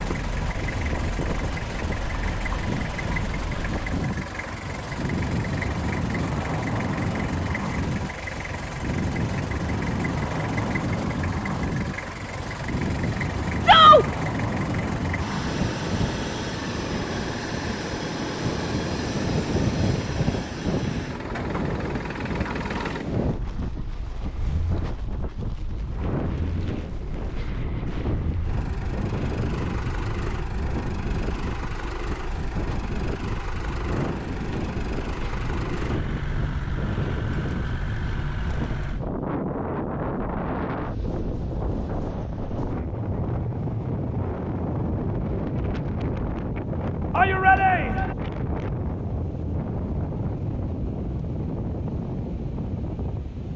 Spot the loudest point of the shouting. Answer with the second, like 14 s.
14 s.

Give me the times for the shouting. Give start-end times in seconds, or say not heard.
13.6-14.1, 47.1-48.1.